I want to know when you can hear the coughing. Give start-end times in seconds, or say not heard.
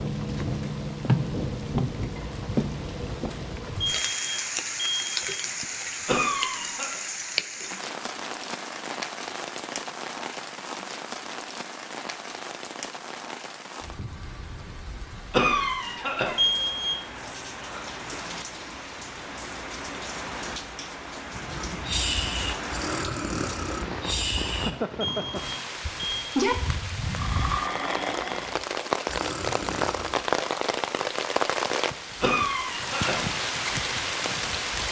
6.0-7.0, 15.3-16.4, 32.2-33.2.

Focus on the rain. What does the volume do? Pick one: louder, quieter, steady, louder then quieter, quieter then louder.
quieter then louder.